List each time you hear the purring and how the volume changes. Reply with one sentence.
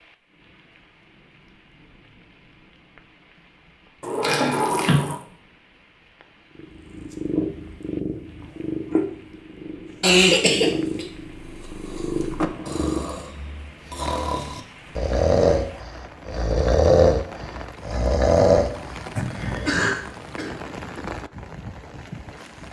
The purring can be heard from 6.5 to 13.2 s, getting quieter then louder.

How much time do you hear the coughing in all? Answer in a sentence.
You can hear the coughing for 3 seconds altogether.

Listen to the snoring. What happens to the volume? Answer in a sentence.
The loudness of the snoring goes up.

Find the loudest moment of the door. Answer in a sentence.
The loudest moment of the door is at 5 seconds.